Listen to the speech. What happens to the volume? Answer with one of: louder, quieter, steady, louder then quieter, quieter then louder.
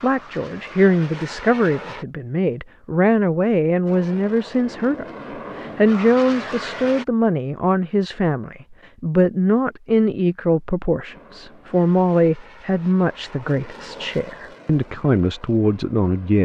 steady.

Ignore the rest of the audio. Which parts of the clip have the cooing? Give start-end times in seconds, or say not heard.
not heard.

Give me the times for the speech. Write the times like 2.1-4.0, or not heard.
0.0-16.3.